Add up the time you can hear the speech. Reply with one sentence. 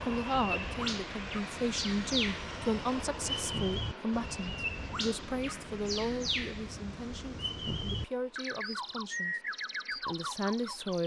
You can hear the speech for 11 seconds altogether.